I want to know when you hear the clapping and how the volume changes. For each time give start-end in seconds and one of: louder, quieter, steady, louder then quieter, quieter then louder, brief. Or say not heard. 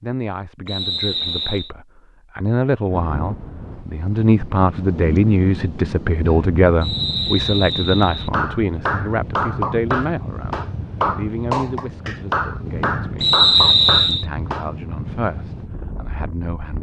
8.3-14.7 steady.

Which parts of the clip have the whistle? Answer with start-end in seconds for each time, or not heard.
0.7-1.7, 6.8-8.3, 13.2-14.2.